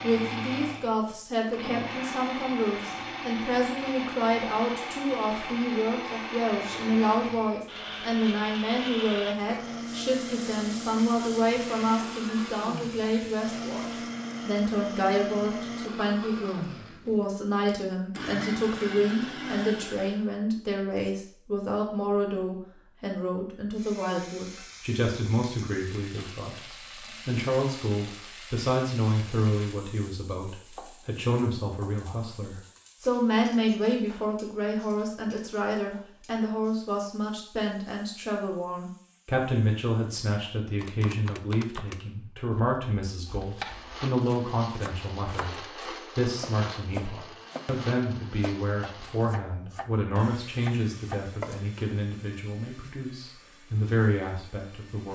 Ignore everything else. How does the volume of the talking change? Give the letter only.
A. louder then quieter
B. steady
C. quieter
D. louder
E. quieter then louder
B.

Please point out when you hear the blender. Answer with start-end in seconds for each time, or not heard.
0.0-20.2, 43.4-55.0.